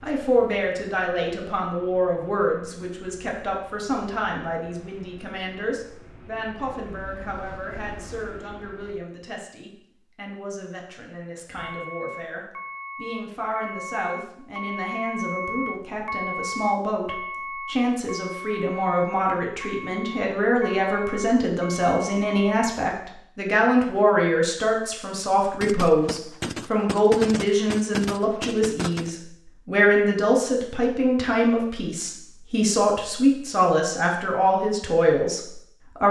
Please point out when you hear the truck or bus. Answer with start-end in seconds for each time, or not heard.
0.0-9.0, 11.6-22.6.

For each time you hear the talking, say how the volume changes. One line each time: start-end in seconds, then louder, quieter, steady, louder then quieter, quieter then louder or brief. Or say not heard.
0.0-36.0 quieter then louder.